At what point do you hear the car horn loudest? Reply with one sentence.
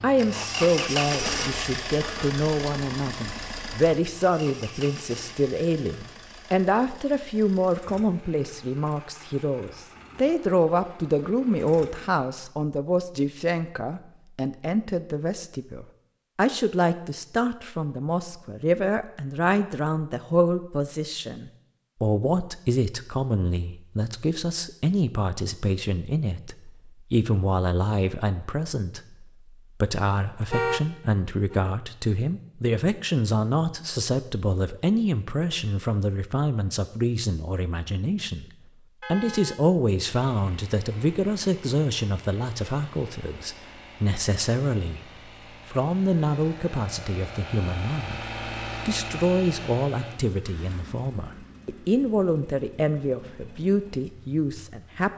The loudest moment of the car horn is at 31 seconds.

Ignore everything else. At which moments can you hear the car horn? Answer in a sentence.
The car horn can be heard from 1.2 to 2.4 s, from 30.4 to 31.7 s and from 39.0 to 39.6 s.